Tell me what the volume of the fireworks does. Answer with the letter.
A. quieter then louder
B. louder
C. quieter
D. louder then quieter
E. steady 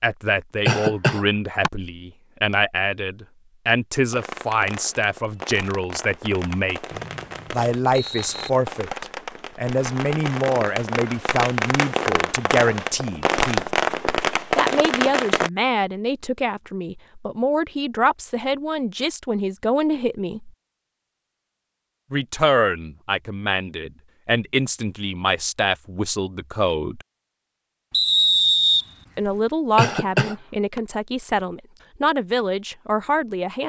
B.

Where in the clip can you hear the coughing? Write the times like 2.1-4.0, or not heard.
0.7-1.7, 29.8-30.8.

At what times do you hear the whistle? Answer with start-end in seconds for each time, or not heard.
6.9-8.5, 27.9-29.4.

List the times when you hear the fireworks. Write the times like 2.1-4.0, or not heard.
4.1-15.5.